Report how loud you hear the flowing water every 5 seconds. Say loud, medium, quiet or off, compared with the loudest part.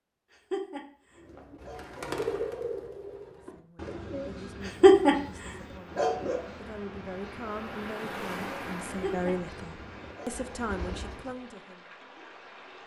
off, loud, medium.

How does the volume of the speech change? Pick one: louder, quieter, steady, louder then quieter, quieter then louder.
louder.